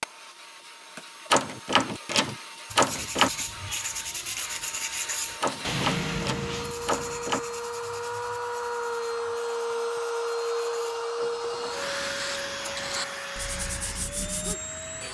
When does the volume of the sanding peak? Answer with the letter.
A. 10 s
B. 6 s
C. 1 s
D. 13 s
B.